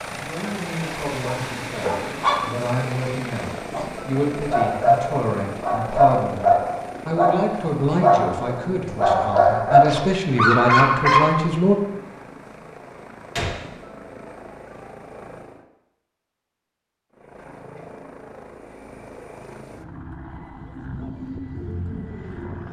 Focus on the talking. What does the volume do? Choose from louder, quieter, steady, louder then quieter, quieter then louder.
louder.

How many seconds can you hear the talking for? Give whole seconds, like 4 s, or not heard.
12 s.